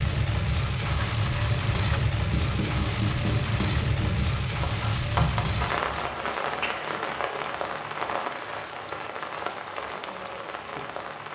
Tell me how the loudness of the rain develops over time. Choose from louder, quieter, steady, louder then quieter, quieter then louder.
quieter.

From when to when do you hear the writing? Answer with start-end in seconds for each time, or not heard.
0.8-6.1.